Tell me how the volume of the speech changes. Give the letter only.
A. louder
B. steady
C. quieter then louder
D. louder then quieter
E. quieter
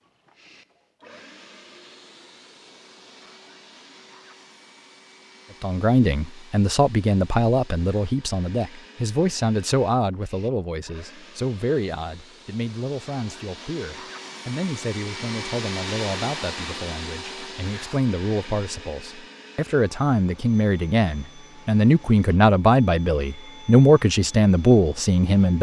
C.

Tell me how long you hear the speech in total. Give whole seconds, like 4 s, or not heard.
20 s.